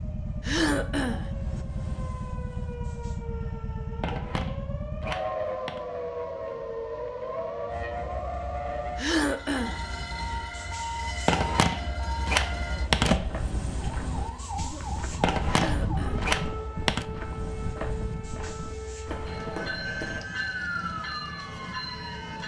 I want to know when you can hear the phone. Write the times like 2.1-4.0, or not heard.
4.0-5.8, 11.2-13.3, 15.2-17.1.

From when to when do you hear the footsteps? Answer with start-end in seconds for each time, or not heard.
13.1-20.2.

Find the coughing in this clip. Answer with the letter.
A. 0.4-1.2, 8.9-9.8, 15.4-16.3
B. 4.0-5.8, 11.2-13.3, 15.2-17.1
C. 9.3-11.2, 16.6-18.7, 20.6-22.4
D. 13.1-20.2
A.